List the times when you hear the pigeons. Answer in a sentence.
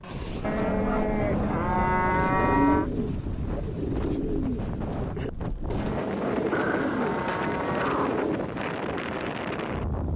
The pigeons can be heard from 1.8 to 8.4 s.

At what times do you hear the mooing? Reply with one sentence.
The mooing can be heard from 0.4 to 2.9 s and from 5.8 to 8.0 s.